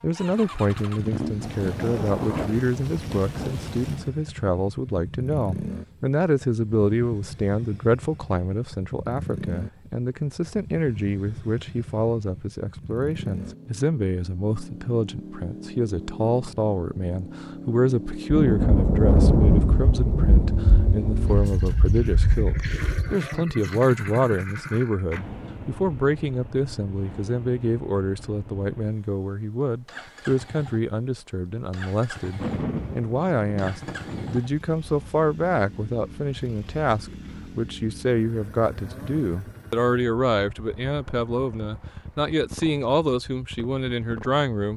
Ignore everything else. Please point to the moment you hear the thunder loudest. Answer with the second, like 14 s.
19 s.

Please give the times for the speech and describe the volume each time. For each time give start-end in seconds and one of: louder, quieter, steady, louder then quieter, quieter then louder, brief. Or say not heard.
0.0-44.7 steady.